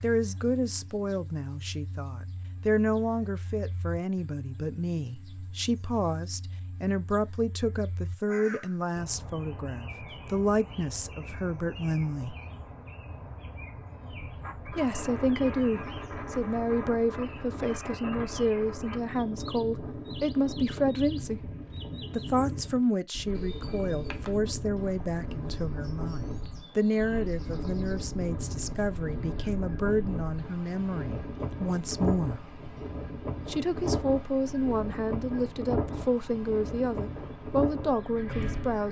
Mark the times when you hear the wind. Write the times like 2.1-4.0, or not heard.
14.2-38.8.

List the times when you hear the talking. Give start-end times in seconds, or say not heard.
0.0-12.3, 14.7-21.5, 22.1-32.4, 33.5-38.8.